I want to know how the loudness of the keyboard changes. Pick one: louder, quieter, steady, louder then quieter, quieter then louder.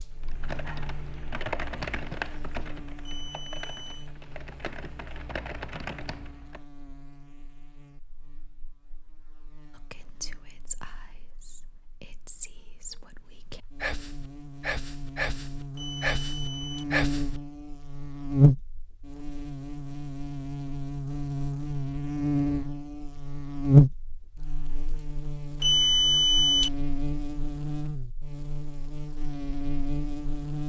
quieter then louder.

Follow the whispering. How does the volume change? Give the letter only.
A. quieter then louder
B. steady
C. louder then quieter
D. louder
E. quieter
D.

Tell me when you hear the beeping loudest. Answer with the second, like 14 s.
26 s.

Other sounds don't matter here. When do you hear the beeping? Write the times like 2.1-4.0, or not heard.
3.0-4.1, 15.8-16.9, 25.6-26.7.